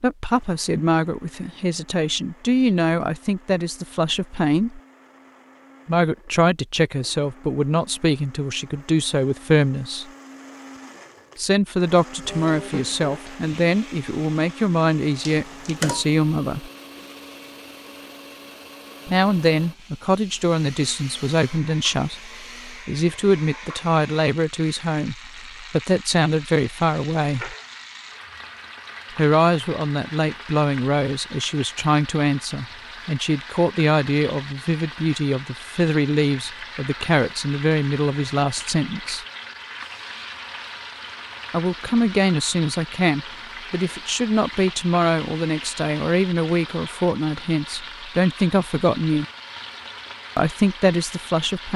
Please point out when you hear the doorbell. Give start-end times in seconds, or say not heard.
15.2-16.1.